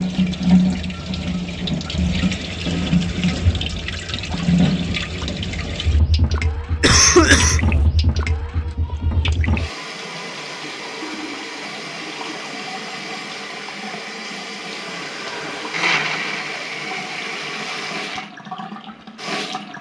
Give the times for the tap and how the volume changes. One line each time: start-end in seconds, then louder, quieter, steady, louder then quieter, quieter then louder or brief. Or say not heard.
0.0-19.7 quieter.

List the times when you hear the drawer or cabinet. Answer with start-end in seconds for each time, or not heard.
not heard.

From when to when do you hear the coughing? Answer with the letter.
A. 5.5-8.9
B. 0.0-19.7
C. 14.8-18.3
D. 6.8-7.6
D.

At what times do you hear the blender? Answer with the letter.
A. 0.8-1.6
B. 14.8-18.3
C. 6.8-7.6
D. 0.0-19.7
B.